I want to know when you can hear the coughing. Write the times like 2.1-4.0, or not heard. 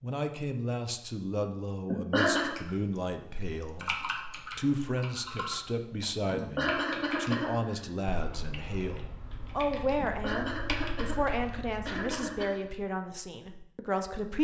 1.9-2.5, 6.3-7.8, 10.0-12.6.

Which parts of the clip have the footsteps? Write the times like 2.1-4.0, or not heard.
not heard.